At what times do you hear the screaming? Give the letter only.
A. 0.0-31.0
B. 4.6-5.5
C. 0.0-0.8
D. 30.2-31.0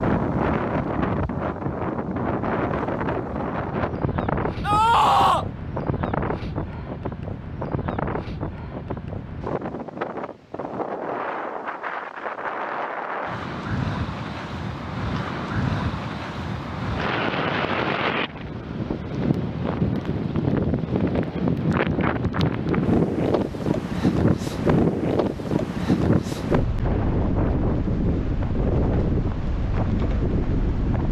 B.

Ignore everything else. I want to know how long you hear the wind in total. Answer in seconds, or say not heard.
31 s.